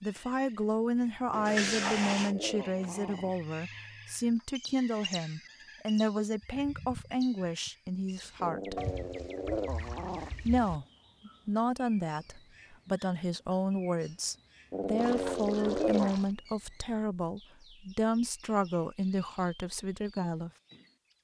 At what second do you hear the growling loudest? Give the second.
16 s.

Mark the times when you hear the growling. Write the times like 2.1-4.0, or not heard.
1.3-3.3, 8.4-10.3, 14.7-16.1.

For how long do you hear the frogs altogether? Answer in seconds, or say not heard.
not heard.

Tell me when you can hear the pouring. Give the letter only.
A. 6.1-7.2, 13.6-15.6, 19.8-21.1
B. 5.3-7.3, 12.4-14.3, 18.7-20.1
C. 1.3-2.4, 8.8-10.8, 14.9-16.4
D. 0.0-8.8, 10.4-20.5
C.